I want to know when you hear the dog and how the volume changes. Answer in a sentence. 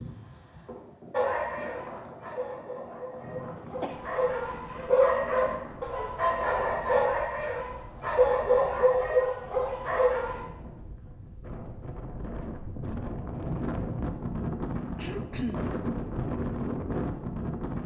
The dog can be heard from 1.1 to 10.4 s, getting louder.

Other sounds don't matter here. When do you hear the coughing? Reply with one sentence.
The coughing can be heard from 3.5 to 4.8 s and from 14.9 to 15.7 s.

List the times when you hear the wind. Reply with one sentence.
The wind can be heard from 0.0 to 17.8 s.